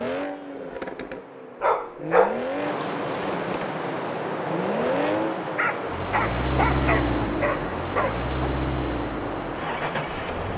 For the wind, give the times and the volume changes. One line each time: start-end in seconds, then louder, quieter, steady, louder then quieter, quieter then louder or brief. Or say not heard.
0.1-10.5 louder.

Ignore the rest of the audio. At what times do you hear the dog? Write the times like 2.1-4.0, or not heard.
1.6-2.4, 5.5-8.2.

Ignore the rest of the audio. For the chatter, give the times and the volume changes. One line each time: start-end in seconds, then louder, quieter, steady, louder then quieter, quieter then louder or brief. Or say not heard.
not heard.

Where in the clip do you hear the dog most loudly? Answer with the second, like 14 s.
2 s.